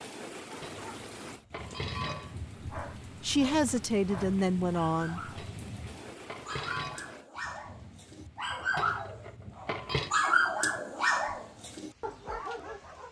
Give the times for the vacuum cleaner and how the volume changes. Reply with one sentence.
The vacuum cleaner can't be heard in this clip.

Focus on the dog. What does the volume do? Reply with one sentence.
The volume of the dog goes up, then down.